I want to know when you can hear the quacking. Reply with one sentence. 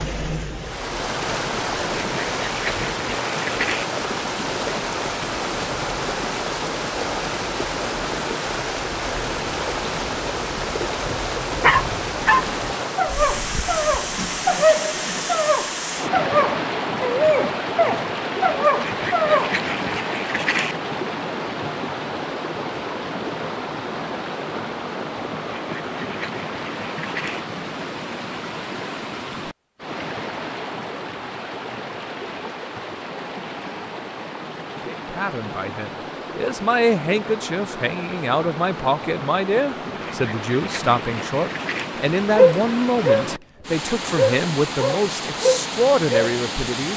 You can hear the quacking from 1.9 to 3.9 s, from 18.8 to 20.8 s, from 25.6 to 27.4 s and from 40.0 to 41.9 s.